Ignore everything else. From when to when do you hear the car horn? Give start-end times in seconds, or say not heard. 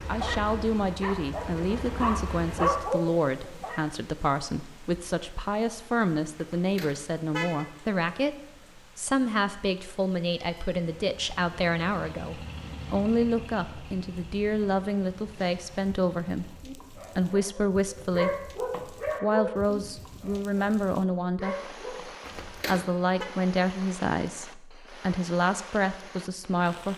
6.3-7.7, 22.2-23.2.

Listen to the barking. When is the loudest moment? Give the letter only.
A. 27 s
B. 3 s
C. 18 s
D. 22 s
B.